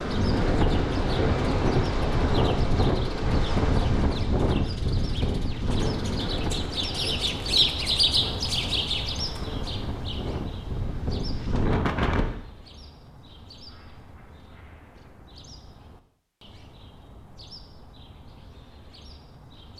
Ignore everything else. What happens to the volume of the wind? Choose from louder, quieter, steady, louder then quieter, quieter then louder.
quieter then louder.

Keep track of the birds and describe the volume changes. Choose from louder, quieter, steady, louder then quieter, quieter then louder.
louder then quieter.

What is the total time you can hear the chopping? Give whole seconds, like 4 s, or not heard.
not heard.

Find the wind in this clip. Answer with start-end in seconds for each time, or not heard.
0.0-12.3.